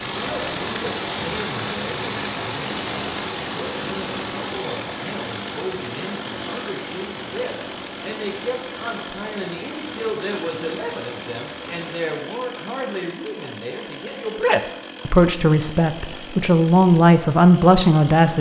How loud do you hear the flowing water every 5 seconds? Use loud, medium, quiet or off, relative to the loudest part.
loud, medium, medium, off.